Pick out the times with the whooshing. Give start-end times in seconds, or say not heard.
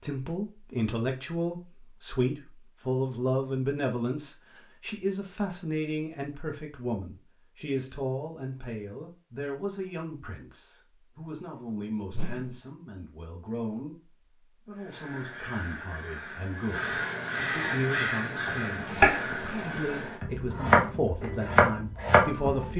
12.1-12.6.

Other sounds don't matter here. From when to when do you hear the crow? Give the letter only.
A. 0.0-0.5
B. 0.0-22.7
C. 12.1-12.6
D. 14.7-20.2
D.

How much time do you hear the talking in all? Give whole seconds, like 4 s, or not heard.
23 s.